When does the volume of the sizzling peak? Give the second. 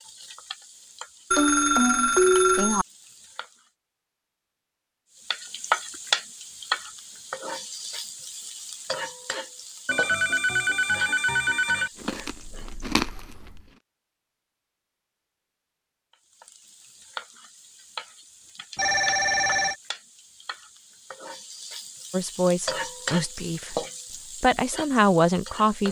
6 s.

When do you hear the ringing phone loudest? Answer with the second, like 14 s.
2 s.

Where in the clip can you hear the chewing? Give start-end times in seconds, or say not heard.
11.9-13.8.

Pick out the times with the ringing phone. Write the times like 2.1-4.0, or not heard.
1.3-2.9, 9.8-11.9, 18.8-19.8.